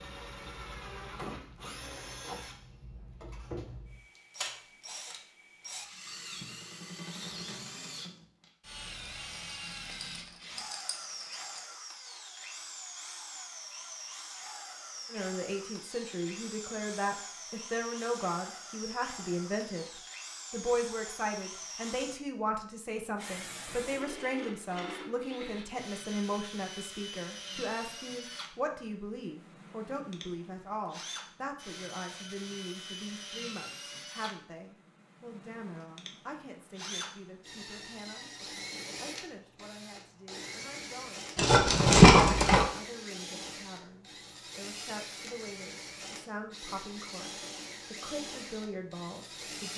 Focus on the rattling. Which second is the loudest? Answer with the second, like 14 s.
42 s.